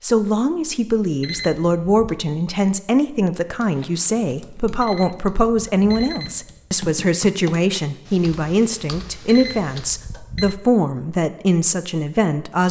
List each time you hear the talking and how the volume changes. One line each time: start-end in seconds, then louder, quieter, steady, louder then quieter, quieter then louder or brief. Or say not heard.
0.0-12.6 steady.